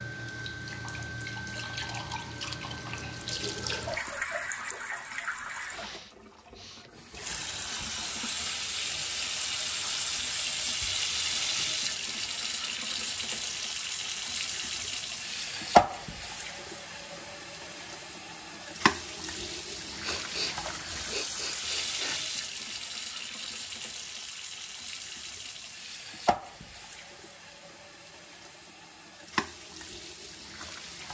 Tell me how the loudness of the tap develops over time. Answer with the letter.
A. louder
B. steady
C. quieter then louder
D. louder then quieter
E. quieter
D.